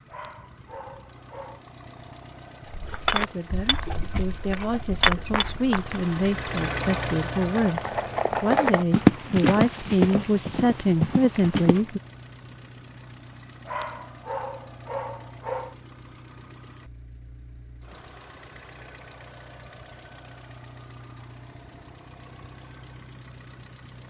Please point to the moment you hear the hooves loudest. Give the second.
9 s.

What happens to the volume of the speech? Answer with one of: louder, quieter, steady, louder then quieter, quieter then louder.
louder.